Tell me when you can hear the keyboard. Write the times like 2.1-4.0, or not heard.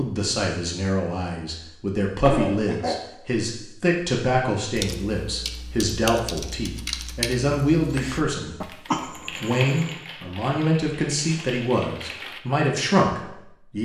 4.8-12.4.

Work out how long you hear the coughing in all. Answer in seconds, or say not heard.
2 s.